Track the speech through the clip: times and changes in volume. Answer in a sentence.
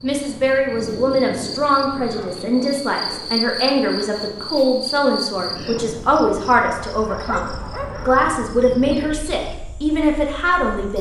You can hear the speech from 0.0 to 10.9 s, at a steady volume.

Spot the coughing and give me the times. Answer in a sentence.
You can't hear the coughing here.